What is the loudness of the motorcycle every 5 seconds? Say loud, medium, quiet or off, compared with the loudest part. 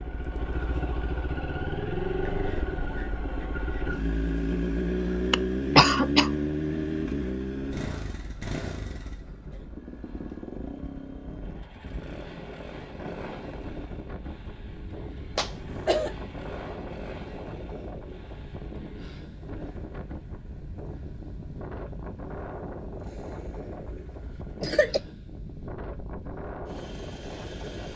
loud, loud, quiet, quiet, quiet, quiet.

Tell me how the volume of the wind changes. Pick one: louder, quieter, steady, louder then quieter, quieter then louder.
louder.